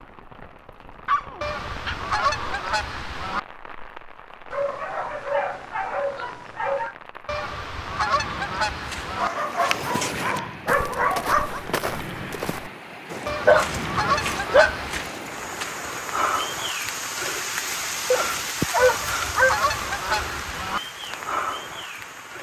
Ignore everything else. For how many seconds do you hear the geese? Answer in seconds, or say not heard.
8 s.